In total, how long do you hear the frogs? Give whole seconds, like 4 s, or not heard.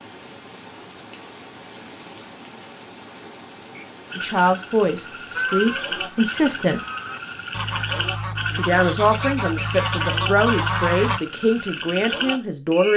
9 s.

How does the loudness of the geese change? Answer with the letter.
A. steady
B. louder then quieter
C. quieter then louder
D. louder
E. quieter
D.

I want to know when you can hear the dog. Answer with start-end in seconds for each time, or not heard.
not heard.